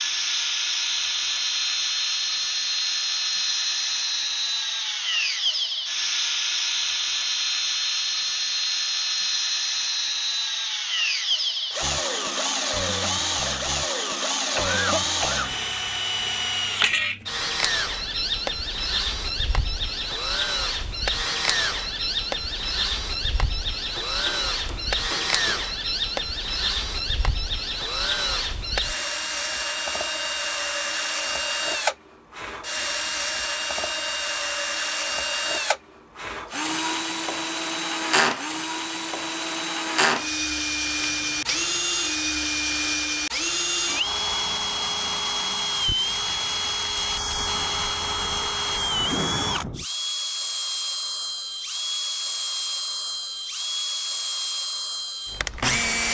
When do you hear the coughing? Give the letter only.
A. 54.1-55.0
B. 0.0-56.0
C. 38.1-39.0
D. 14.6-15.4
D.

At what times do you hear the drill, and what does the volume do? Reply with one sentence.
The drill can be heard from 0.0 to 56.0 s, at a steady volume.